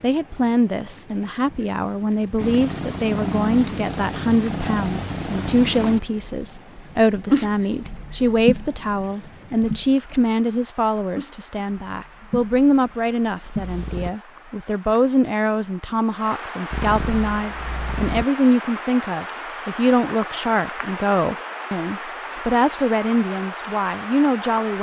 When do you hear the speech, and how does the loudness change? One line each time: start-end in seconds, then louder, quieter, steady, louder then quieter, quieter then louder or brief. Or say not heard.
0.0-24.7 steady.